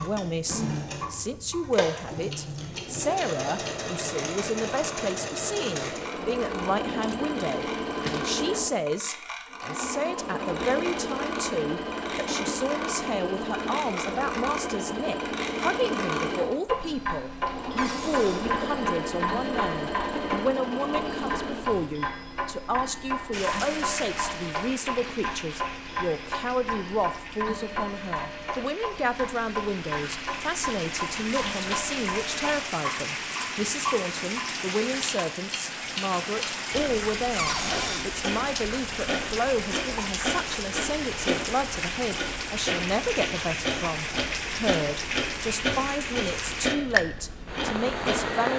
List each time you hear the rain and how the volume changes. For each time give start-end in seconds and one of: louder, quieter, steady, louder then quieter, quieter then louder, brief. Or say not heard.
23.3-48.5 louder.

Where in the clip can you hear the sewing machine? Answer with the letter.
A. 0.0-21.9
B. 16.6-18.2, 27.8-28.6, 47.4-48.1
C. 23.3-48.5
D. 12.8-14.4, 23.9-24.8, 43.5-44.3
A.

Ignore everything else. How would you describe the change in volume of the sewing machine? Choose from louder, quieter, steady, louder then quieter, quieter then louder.
steady.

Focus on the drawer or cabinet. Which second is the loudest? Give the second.
38 s.